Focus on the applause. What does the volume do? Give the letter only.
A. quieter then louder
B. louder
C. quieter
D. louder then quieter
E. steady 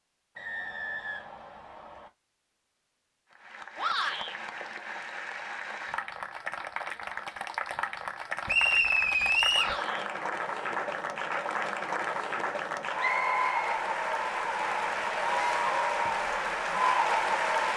B.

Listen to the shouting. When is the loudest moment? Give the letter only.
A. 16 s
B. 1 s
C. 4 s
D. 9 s
C.